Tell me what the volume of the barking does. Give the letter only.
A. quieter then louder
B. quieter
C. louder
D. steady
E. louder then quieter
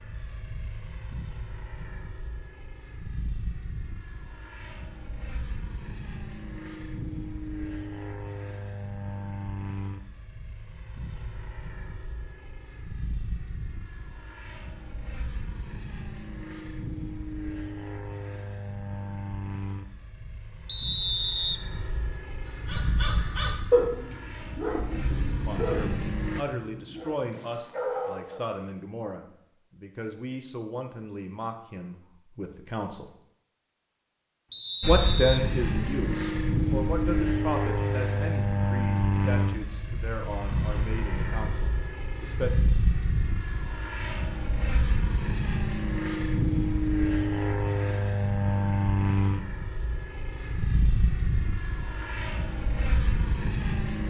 A.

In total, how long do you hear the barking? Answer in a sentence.
You can hear the barking for 6 seconds altogether.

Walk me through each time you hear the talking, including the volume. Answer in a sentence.
You can hear the talking from 25.1 to 33.0 s, at a steady volume; and from 34.9 to 42.5 s, getting quieter.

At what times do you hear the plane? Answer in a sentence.
The plane can be heard from 0.0 to 26.4 s and from 34.8 to 54.0 s.